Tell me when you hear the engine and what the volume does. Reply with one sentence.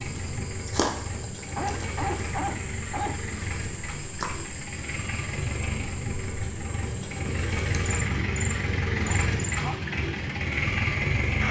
The engine can be heard from 0.0 to 11.4 s, getting louder.